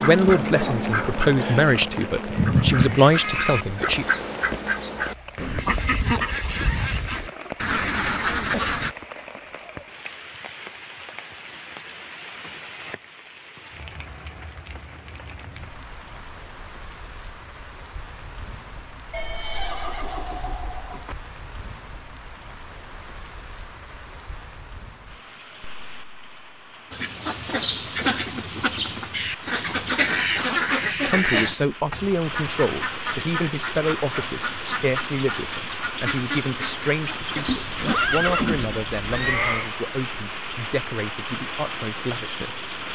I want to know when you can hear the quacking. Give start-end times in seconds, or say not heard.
0.0-8.9, 26.9-38.6.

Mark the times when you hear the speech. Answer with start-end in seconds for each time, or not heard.
0.0-4.0, 31.1-42.6.